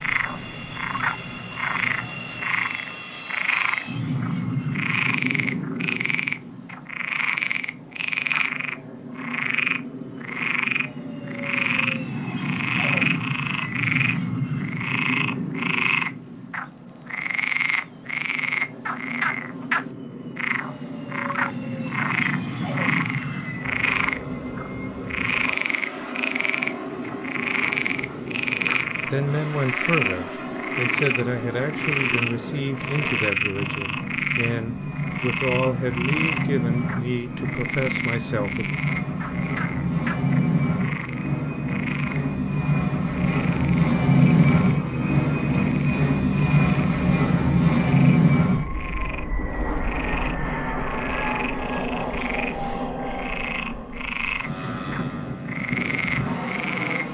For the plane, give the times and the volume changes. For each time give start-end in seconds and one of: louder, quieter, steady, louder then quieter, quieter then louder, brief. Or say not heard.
0.0-57.0 louder.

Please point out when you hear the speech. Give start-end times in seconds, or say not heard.
29.1-38.7.